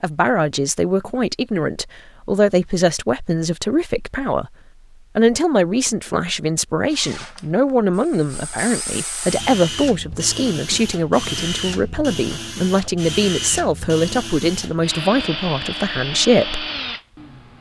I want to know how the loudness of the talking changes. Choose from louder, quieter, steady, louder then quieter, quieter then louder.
steady.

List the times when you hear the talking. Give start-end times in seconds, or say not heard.
0.0-4.5, 5.2-16.6.